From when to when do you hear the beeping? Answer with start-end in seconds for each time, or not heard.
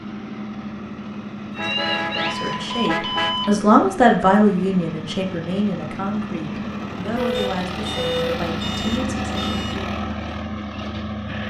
1.5-3.5, 7.3-9.8.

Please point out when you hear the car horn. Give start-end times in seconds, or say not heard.
1.6-3.4, 7.2-8.2.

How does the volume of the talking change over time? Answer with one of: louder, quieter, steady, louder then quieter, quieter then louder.
quieter.